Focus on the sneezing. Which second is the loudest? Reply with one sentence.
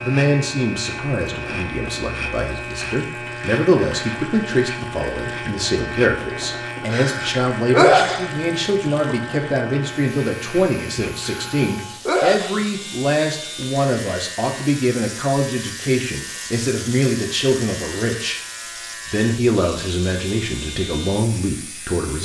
The volume of the sneezing peaks at 8 seconds.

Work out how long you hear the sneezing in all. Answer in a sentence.
You can hear the sneezing for 3 seconds altogether.